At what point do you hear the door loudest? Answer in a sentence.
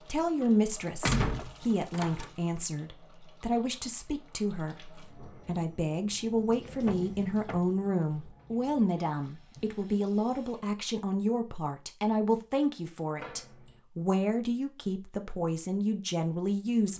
The loudest moment of the door is at 1 second.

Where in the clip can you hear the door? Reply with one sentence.
The door can be heard from 1.0 to 2.3 s, from 6.8 to 7.6 s and from 13.2 to 13.8 s.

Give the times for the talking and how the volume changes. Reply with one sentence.
The talking can be heard from 0.1 to 16.9 s, at a steady volume.